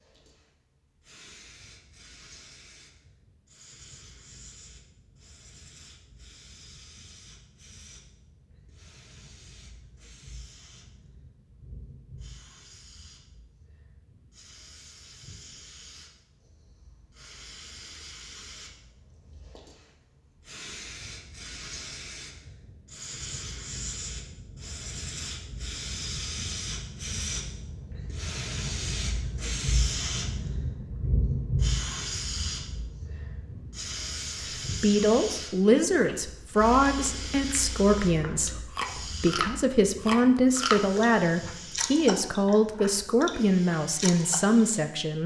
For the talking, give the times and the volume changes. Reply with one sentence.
The talking can be heard from 34.8 to 45.2 s, at a steady volume.